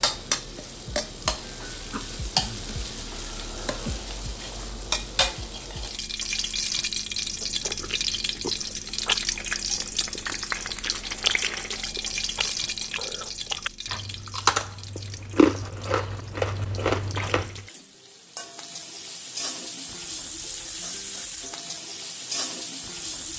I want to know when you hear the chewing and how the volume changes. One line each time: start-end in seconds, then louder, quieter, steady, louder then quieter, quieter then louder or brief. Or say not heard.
7.2-17.6 quieter then louder.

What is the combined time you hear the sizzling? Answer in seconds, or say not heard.
23 s.